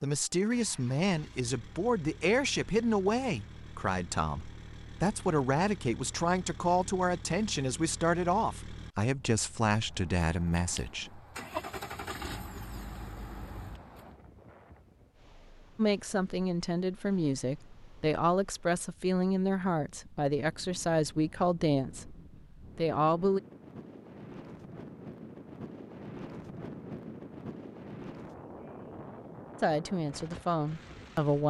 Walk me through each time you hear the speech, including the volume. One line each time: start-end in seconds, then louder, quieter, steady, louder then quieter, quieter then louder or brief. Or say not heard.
0.0-11.2 steady
15.8-22.1 steady
22.8-23.4 brief
29.6-31.4 brief.